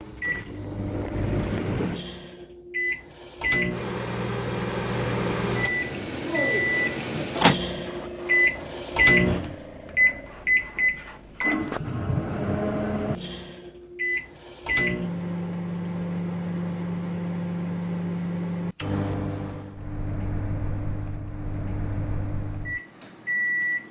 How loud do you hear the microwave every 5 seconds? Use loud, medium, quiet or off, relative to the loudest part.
medium, loud, loud, medium, medium.